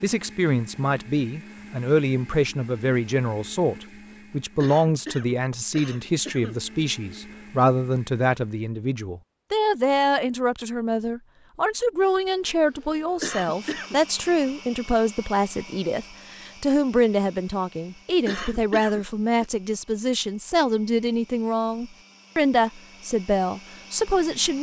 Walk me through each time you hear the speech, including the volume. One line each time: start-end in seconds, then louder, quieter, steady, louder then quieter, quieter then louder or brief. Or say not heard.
0.0-24.5 steady.